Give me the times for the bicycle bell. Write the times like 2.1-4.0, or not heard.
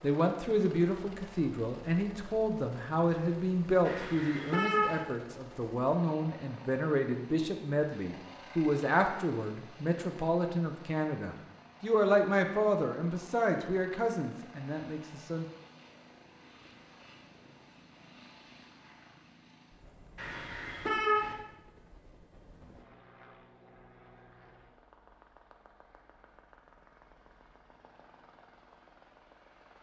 not heard.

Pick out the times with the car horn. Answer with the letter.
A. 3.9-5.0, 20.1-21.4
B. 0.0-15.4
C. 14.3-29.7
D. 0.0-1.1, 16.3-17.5
A.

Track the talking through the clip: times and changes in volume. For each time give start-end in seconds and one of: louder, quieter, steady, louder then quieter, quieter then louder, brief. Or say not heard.
0.0-15.4 steady.